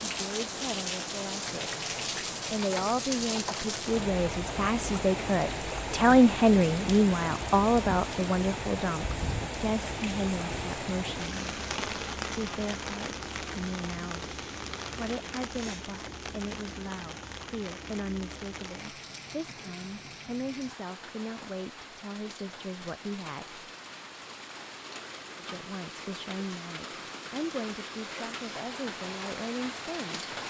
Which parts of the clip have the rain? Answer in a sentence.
The rain can be heard from 0.0 to 30.4 s.